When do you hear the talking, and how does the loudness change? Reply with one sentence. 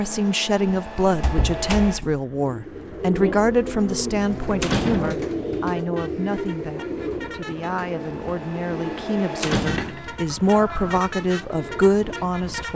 The talking can be heard from 0.0 to 12.7 s, getting quieter then louder.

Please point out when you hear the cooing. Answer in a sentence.
You can hear the cooing from 2.4 to 12.2 s.